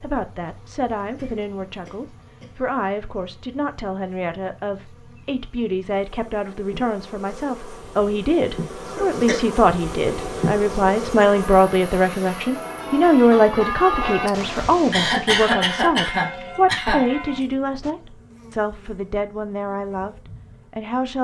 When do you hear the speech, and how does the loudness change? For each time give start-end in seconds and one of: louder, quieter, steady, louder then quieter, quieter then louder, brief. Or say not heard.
0.0-21.1 louder then quieter.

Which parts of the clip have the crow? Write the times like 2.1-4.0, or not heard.
not heard.